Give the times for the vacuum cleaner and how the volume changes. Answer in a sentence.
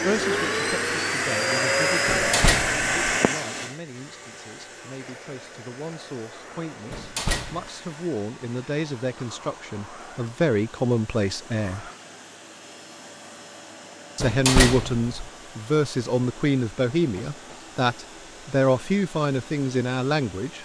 You can hear the vacuum cleaner from 0.0 to 20.6 s, getting quieter.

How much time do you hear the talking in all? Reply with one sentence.
The talking can be heard for 18 seconds in total.